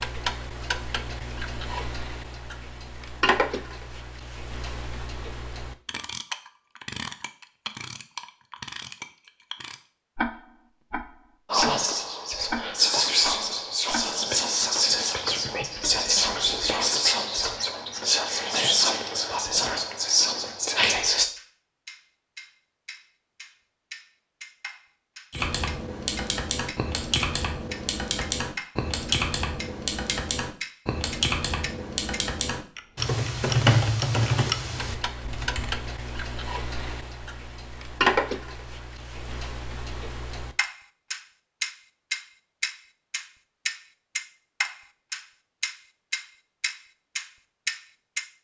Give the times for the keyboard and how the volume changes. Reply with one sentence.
The keyboard can be heard from 25.3 to 35.8 s, getting louder.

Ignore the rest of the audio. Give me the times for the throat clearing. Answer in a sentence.
You can't hear the throat clearing here.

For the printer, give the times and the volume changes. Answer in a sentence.
The printer can't be heard in this clip.